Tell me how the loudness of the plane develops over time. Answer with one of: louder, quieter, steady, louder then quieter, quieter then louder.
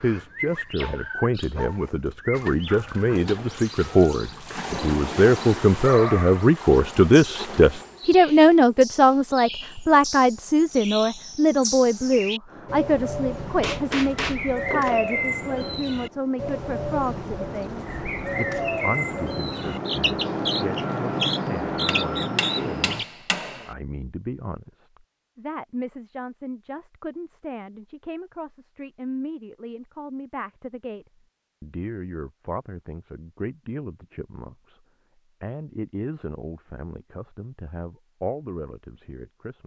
louder.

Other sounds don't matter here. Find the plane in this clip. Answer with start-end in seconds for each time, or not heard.
12.4-23.1.